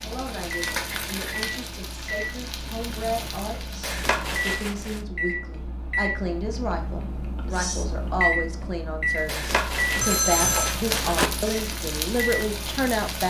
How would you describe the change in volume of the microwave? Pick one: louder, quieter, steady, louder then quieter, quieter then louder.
louder then quieter.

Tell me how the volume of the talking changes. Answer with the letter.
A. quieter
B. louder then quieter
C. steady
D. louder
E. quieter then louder
D.